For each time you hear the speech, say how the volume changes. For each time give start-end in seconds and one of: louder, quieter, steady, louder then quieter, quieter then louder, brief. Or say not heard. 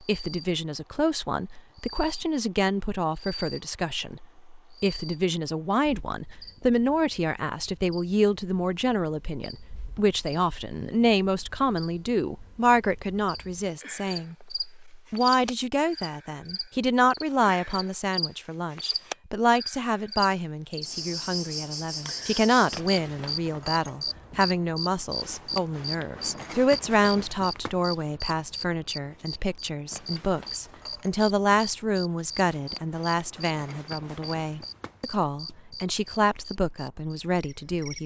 0.1-38.0 steady.